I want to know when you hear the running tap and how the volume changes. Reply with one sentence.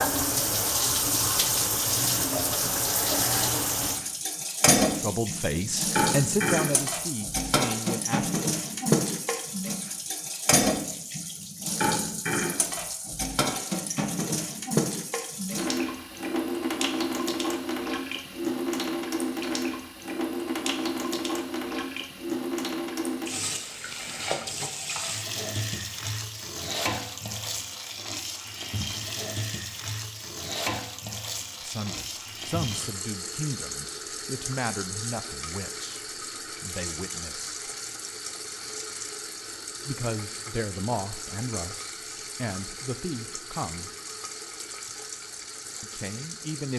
You can hear the running tap from 0.0 to 46.7 s, getting quieter.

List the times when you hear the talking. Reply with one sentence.
You can hear the talking from 4.9 to 8.4 s, from 31.6 to 37.5 s, from 39.9 to 43.9 s and from 45.8 to 46.7 s.